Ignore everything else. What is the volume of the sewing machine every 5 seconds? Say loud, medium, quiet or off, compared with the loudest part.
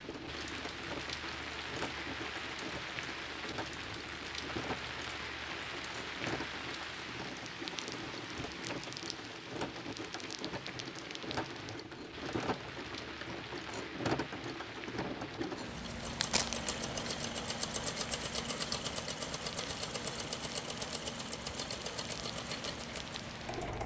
medium, medium, loud, loud, loud.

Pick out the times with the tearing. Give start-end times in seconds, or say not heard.
15.9-16.6.